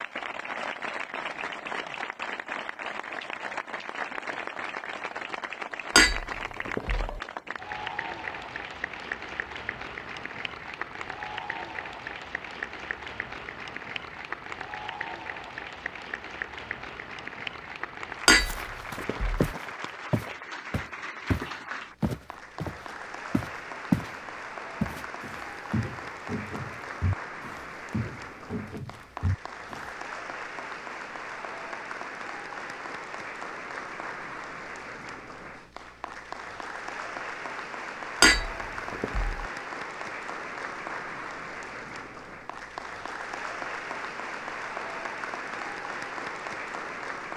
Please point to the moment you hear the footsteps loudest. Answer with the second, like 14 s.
24 s.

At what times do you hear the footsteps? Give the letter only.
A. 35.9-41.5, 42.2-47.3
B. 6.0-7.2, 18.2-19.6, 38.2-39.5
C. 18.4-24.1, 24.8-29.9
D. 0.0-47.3
C.